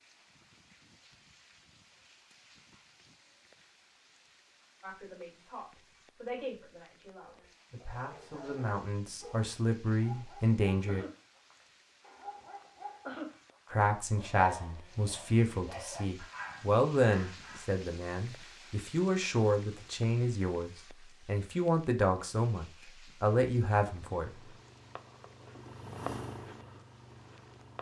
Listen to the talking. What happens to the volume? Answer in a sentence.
The volume of the talking goes up.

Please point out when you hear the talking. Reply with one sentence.
The talking can be heard from 4.8 to 11.1 s and from 13.7 to 24.3 s.